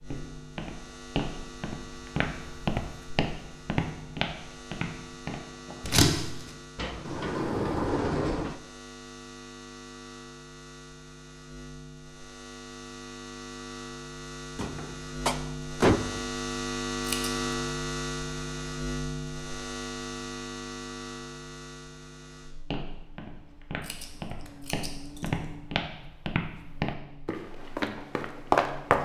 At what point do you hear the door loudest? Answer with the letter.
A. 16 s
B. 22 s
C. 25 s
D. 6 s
A.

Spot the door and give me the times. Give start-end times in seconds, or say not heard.
6.8-8.6, 14.6-16.2.